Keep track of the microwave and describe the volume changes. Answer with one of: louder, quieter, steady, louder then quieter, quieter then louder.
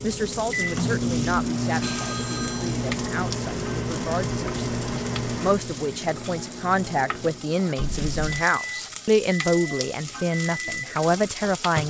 quieter.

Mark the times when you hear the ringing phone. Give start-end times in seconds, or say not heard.
1.8-2.8, 7.8-8.4.